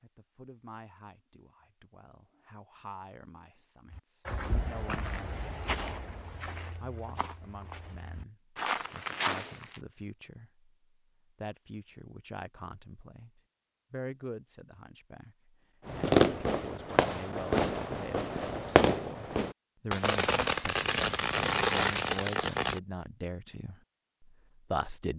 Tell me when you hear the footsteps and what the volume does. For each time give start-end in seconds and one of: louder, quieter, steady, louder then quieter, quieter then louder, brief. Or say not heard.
3.9-9.8 quieter then louder.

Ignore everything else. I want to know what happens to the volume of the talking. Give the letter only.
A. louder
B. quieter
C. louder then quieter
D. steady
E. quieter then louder
A.